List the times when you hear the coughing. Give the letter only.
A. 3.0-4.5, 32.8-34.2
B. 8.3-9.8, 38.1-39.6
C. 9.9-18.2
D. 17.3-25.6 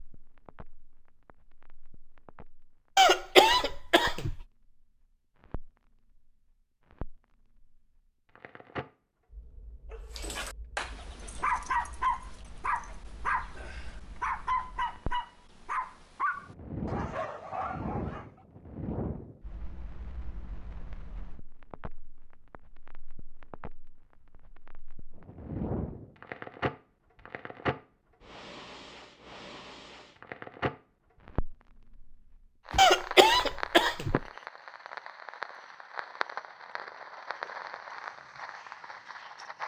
A.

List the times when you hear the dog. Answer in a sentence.
You can hear the dog from 9.9 to 18.2 s.